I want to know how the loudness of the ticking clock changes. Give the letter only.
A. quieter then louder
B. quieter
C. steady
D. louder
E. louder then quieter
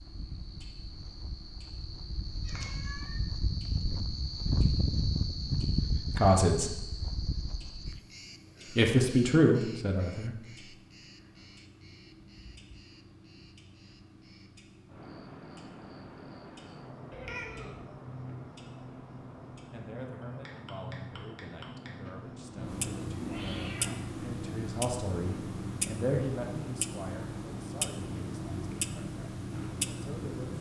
D.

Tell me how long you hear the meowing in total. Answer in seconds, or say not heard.
2 s.